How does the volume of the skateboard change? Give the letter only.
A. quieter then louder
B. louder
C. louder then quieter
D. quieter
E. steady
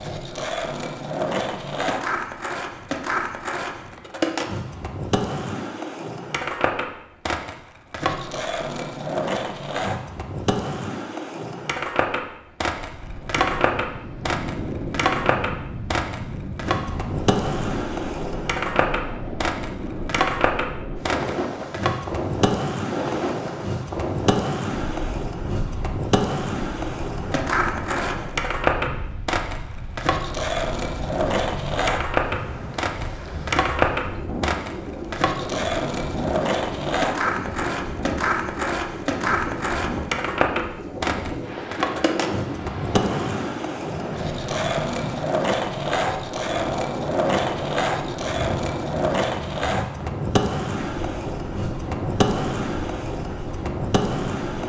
E.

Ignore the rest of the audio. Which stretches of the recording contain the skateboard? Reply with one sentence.
The skateboard can be heard from 0.0 to 54.6 s.